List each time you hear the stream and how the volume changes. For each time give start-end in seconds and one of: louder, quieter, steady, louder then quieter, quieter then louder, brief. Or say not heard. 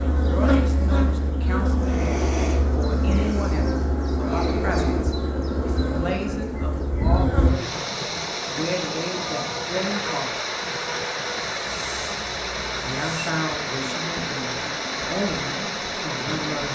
7.3-16.6 steady.